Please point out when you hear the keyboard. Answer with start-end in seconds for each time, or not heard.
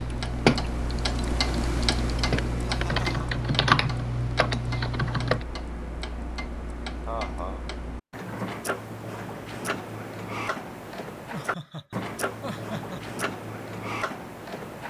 0.0-5.5.